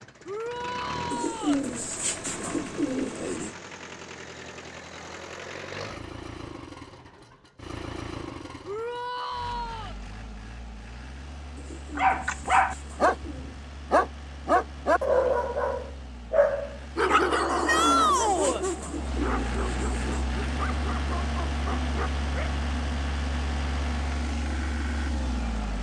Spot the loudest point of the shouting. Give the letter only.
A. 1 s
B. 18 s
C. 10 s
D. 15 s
B.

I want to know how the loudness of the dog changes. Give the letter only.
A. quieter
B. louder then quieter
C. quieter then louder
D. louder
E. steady
A.